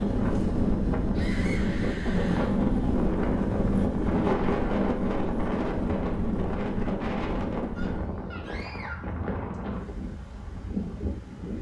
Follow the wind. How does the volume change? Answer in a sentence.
The volume of the wind goes down.